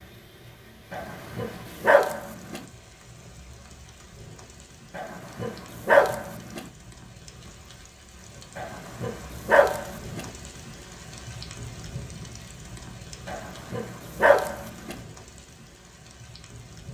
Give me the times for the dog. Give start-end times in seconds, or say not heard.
0.9-2.6, 5.0-6.6, 8.6-10.2, 13.2-14.9.